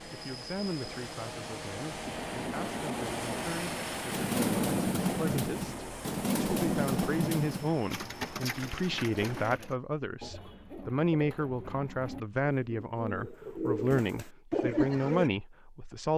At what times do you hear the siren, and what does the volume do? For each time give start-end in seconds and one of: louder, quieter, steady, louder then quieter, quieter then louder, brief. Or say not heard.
not heard.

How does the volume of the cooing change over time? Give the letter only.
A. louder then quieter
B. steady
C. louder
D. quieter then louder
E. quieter
D.